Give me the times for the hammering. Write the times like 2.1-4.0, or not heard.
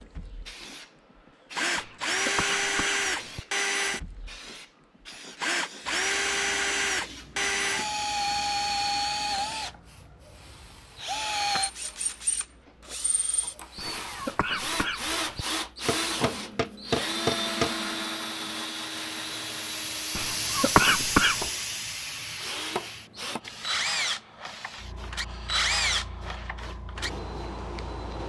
15.8-17.7.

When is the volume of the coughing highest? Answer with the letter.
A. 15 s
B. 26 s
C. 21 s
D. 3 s
C.